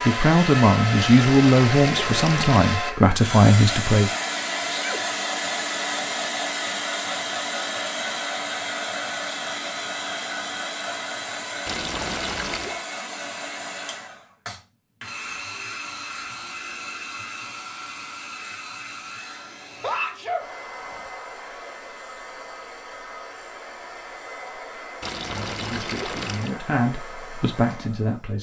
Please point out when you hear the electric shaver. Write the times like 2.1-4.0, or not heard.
not heard.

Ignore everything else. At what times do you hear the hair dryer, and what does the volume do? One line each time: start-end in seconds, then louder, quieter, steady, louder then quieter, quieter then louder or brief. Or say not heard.
0.0-28.3 quieter.